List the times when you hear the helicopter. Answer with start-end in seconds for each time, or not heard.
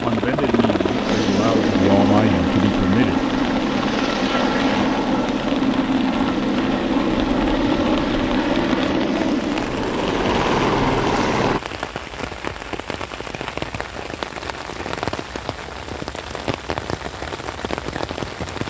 0.0-11.6.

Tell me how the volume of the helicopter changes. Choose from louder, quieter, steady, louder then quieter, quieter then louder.
steady.